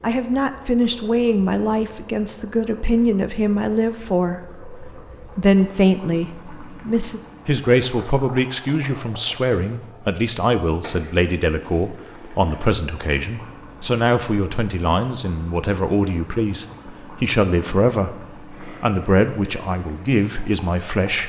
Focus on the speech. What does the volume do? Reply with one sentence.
The loudness of the speech stays about the same.